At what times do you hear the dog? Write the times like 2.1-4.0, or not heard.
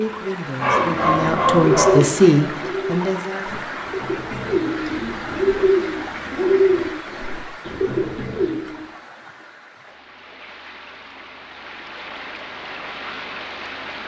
0.6-2.1.